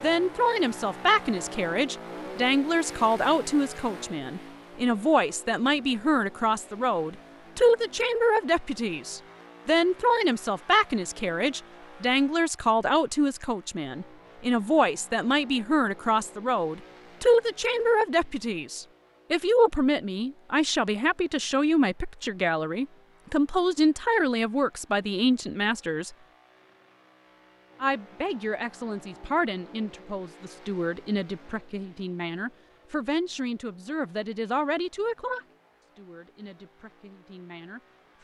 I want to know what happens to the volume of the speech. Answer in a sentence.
The loudness of the speech goes down.